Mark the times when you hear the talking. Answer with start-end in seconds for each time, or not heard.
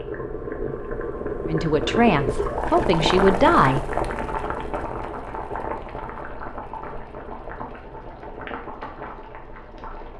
1.4-3.9.